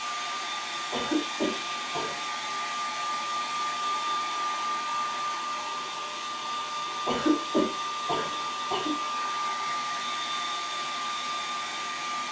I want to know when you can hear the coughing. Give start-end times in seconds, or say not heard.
0.9-2.1, 7.0-8.9.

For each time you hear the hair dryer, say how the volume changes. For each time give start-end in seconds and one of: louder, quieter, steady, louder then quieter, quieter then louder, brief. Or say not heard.
0.0-12.2 steady.